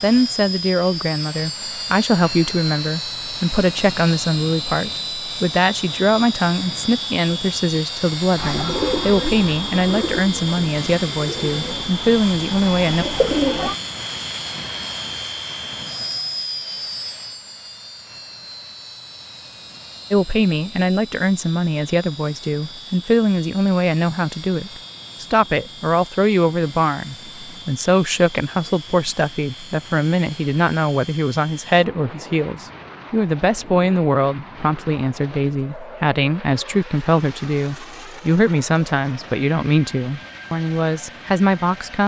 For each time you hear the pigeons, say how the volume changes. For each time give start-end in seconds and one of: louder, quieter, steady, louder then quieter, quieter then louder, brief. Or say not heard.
8.3-13.8 quieter then louder.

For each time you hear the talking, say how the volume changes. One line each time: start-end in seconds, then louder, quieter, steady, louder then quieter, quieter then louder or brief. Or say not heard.
0.0-13.1 steady
20.1-42.0 steady.